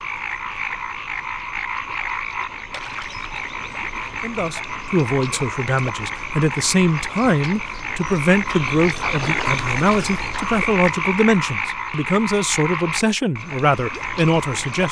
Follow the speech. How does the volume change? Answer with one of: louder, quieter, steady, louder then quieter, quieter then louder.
steady.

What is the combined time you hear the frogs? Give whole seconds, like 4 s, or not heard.
15 s.